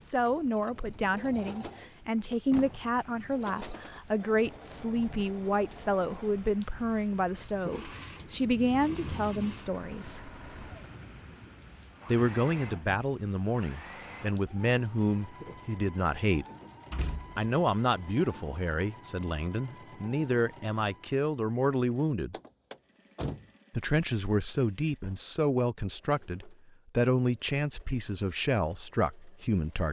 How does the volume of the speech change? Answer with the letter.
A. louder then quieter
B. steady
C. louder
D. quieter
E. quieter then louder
B.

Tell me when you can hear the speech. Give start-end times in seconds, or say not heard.
0.0-10.3, 12.1-16.4, 17.4-22.4, 23.7-29.8.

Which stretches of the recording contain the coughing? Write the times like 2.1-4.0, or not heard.
not heard.